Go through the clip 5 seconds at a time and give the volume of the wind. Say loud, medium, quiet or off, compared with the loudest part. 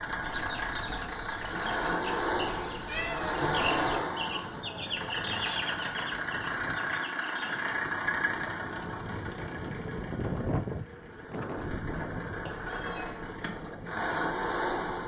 medium, medium, loud.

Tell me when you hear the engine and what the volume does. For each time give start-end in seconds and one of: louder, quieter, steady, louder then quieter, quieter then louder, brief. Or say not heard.
0.0-15.0 quieter then louder.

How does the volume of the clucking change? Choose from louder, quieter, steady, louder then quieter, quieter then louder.
louder then quieter.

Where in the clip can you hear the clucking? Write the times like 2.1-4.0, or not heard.
0.2-7.5.